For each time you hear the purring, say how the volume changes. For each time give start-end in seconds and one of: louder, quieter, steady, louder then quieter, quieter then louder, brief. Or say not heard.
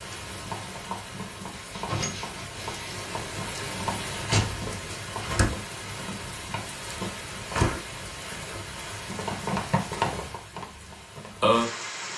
not heard.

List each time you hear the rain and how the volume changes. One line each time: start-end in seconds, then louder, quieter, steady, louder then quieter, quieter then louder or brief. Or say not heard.
0.0-12.1 louder.